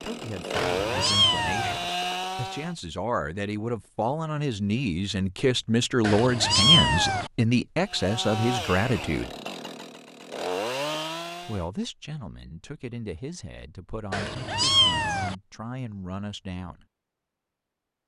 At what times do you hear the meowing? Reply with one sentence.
You can hear the meowing from 0.6 to 1.8 s, from 6.0 to 7.3 s and from 14.1 to 15.3 s.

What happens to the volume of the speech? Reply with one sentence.
The loudness of the speech goes up, then down.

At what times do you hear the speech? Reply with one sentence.
The speech can be heard from 0.0 to 9.3 s and from 11.4 to 16.9 s.